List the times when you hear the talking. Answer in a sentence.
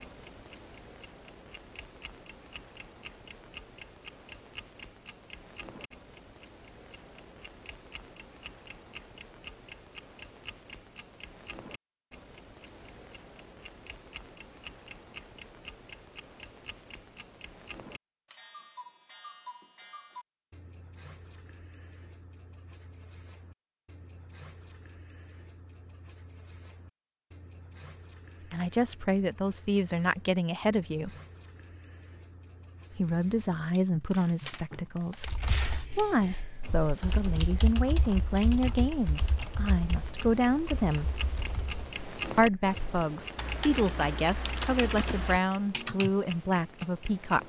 The talking can be heard from 28.5 to 31.1 s, from 32.9 to 41.1 s and from 42.4 to 47.4 s.